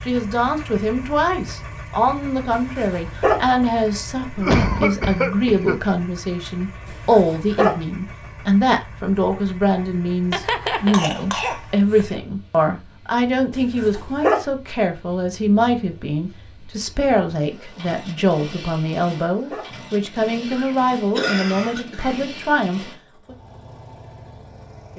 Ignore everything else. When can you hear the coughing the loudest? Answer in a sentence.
The volume of the coughing peaks at 5 seconds.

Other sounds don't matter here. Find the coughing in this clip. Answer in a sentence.
The coughing can be heard from 4.3 to 5.8 s, from 10.3 to 12.1 s and from 20.5 to 22.2 s.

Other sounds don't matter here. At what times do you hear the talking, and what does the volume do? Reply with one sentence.
The talking can be heard from 0.1 to 23.4 s, at a steady volume.